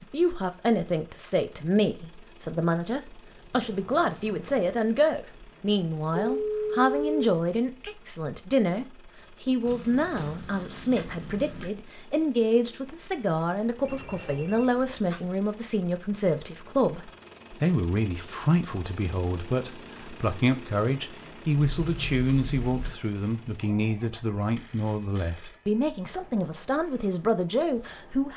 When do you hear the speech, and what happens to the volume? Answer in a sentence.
The speech can be heard from 0.0 to 28.3 s, at a steady volume.